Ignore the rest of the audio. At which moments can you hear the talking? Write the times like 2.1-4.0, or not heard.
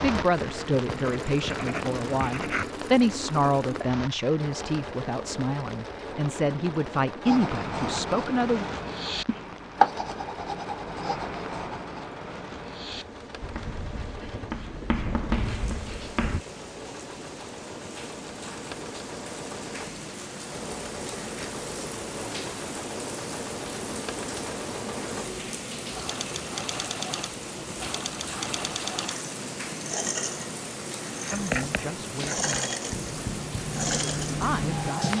0.0-8.7, 31.3-32.8, 34.4-35.1.